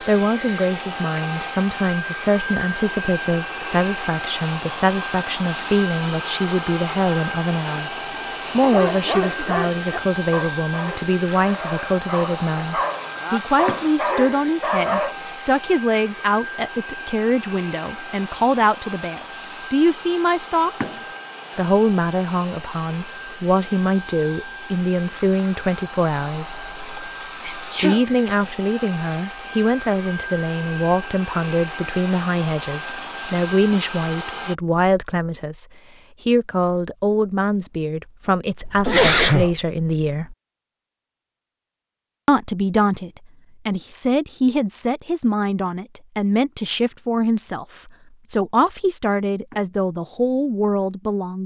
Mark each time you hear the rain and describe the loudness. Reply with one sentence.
You can't hear the rain here.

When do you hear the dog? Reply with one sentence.
You can hear the dog from 8.6 to 15.2 s.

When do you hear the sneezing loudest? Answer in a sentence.
The volume of the sneezing peaks at 39 seconds.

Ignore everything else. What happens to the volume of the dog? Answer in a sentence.
The loudness of the dog goes down, then up.